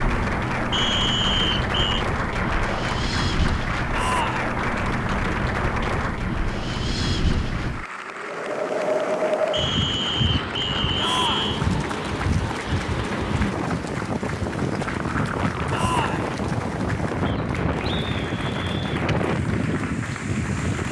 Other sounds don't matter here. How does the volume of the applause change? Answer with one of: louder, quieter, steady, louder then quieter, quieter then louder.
quieter.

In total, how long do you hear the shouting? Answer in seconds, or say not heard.
2 s.